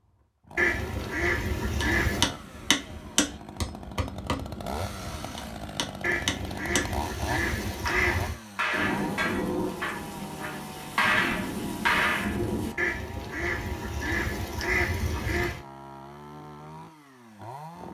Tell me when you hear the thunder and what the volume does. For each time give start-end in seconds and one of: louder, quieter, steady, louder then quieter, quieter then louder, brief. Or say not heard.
8.7-12.8 quieter then louder.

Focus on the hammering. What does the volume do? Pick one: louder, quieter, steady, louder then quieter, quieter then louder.
quieter then louder.